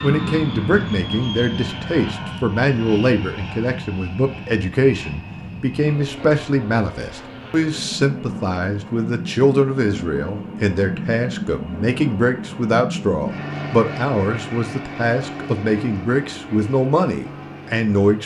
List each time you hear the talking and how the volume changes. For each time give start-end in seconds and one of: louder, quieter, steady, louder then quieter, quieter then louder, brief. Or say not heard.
0.0-18.2 steady.